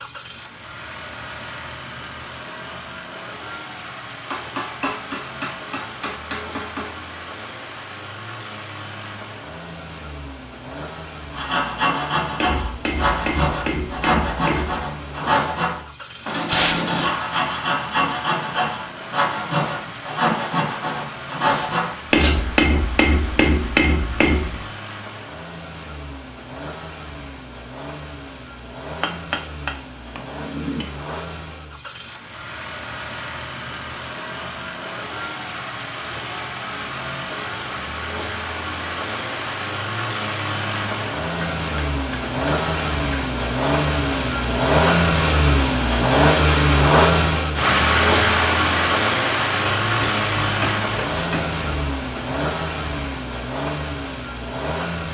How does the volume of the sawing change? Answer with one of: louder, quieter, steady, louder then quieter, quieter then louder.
steady.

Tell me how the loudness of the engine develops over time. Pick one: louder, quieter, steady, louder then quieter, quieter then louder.
louder.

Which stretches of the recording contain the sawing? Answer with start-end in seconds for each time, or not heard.
11.3-22.4.